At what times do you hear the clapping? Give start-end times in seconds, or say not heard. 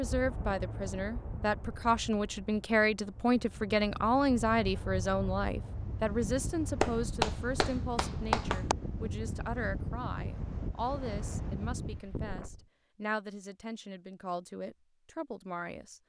6.8-8.8.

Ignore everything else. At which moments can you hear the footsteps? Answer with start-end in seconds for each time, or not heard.
not heard.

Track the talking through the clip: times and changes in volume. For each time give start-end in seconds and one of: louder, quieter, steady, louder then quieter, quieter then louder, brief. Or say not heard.
0.0-16.0 quieter.